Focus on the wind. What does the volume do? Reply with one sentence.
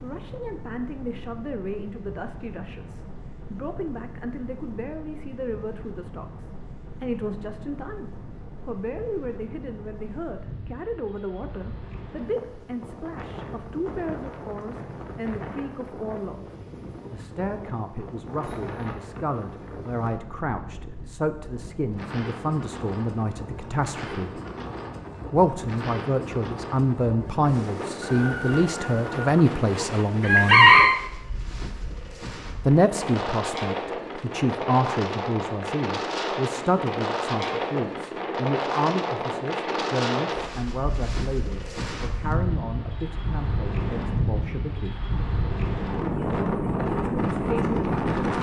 The loudness of the wind goes up.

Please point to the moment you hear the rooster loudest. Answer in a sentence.
The loudest moment of the rooster is at 31 seconds.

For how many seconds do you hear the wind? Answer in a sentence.
You can hear the wind for 48 seconds altogether.